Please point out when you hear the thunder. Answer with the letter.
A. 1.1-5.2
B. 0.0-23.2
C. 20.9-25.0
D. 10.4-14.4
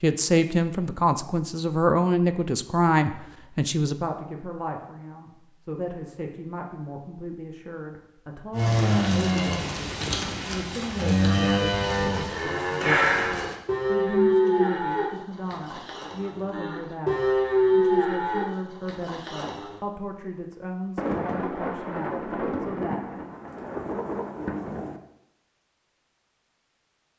C.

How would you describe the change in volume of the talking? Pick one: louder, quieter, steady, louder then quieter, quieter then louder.
quieter.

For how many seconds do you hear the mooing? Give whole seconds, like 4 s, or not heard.
11 s.